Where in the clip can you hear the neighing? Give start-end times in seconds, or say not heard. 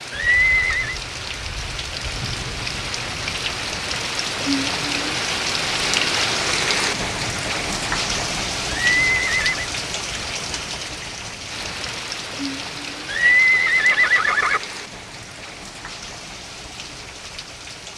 0.1-1.0, 8.7-9.7, 13.1-14.6.